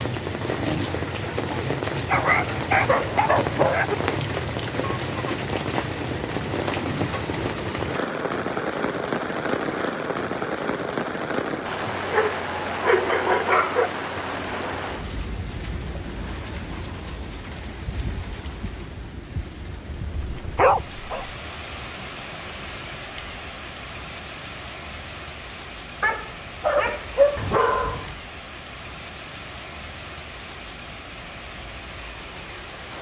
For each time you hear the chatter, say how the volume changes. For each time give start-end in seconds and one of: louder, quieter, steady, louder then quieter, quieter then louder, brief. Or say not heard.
not heard.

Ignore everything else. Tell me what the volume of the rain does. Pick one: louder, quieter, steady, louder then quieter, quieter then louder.
quieter.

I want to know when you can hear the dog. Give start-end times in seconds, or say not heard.
2.1-4.0, 12.1-13.9, 20.2-21.3, 26.0-28.1.